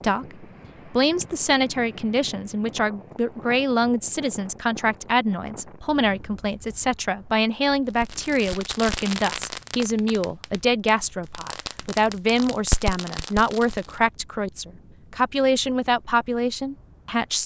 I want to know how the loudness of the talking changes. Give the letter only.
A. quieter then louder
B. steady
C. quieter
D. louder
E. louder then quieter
B.